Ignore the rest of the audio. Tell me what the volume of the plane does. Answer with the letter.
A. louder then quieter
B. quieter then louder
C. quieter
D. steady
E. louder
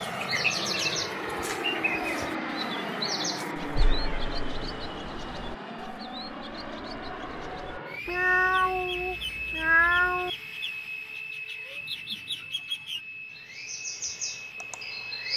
C.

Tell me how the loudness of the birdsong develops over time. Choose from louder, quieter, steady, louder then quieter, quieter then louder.
quieter then louder.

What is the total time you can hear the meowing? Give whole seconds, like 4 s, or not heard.
3 s.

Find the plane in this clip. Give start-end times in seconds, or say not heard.
0.0-15.3.